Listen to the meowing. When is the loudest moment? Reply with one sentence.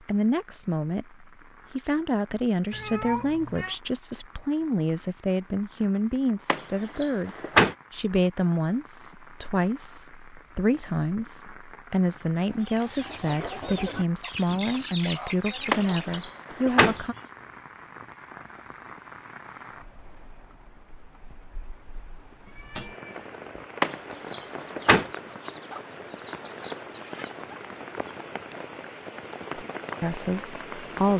The loudest moment of the meowing is at 3 seconds.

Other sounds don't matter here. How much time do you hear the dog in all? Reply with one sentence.
You can't hear the dog here.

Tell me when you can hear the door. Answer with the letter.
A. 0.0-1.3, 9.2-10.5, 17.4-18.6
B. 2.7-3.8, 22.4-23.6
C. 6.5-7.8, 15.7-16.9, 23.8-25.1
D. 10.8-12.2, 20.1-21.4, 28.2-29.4
C.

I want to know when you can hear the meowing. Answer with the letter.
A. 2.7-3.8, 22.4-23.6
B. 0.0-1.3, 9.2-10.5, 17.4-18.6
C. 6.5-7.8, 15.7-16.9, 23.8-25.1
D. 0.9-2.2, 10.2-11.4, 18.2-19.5
A.